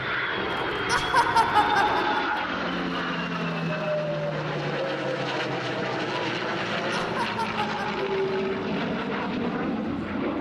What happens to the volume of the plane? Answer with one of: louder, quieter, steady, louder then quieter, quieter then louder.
steady.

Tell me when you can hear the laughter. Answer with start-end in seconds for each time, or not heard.
0.8-2.5, 7.0-8.3.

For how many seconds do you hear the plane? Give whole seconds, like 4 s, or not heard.
10 s.